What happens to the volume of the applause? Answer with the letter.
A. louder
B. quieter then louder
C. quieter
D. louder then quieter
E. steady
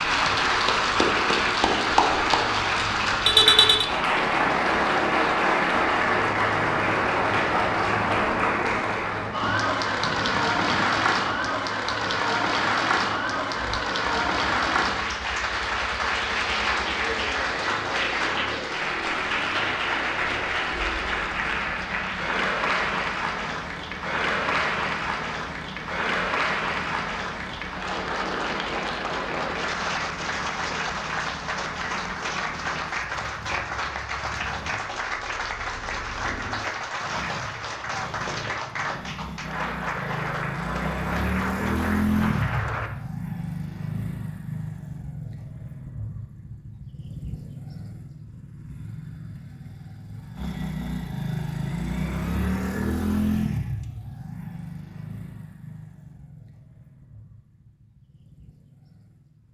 C.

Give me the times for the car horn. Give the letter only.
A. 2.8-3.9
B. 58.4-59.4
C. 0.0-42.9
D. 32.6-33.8
A.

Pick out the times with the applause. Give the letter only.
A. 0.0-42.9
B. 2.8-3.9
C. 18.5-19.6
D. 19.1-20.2
A.